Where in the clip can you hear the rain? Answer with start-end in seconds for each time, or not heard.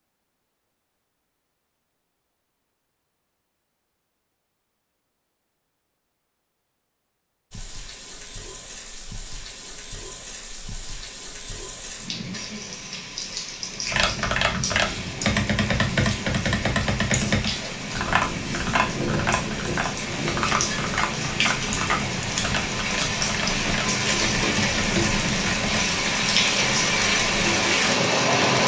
7.5-28.6.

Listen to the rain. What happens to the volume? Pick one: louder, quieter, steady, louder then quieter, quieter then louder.
louder.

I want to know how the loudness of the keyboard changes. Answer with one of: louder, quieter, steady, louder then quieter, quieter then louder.
quieter.